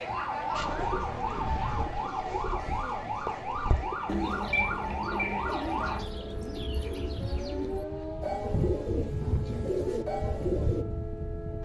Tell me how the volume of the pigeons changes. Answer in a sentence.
The loudness of the pigeons goes up.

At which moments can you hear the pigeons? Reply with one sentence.
The pigeons can be heard from 0.6 to 10.8 s.